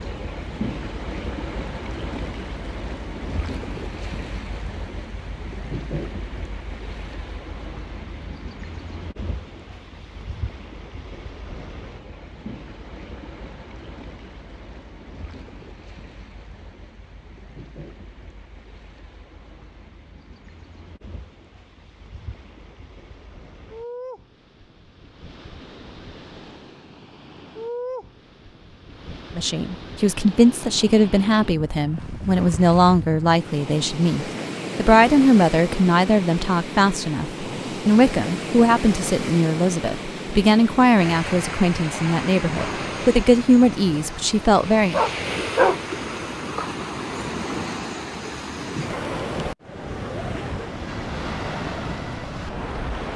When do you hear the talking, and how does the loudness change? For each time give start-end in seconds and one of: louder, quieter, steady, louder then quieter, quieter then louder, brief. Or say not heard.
29.4-45.0 steady.